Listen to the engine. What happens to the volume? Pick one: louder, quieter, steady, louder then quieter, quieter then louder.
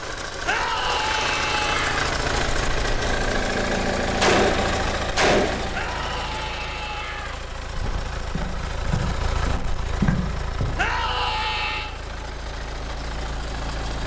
quieter.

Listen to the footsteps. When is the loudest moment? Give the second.
10 s.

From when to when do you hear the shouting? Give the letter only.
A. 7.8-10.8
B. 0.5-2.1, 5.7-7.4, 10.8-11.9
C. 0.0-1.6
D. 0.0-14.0
B.